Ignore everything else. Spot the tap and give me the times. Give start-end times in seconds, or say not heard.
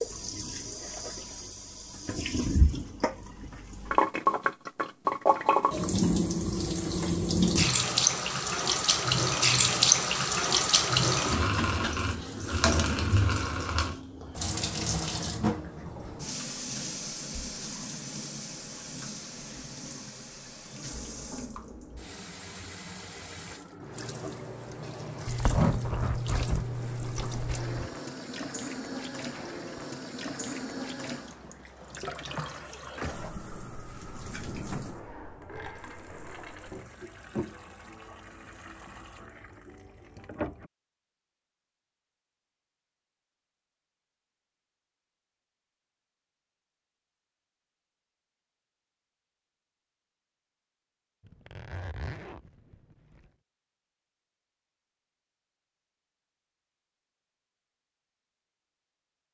0.0-40.7.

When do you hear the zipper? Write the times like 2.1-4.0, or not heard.
25.2-27.9, 51.2-53.2.